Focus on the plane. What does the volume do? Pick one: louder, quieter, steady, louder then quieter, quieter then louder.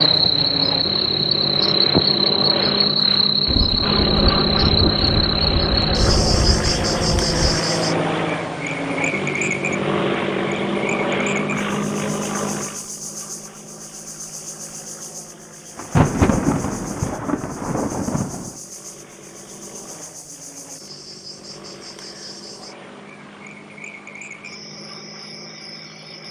quieter.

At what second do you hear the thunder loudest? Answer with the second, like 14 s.
16 s.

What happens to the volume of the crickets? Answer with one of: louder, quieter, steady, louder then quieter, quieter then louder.
quieter.